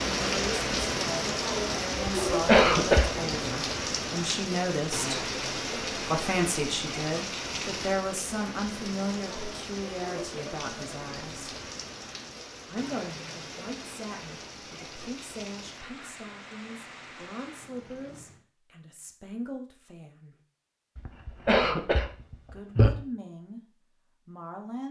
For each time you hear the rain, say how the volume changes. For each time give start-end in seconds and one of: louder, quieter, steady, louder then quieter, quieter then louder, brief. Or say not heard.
0.0-18.4 quieter.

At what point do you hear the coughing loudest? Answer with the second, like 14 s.
3 s.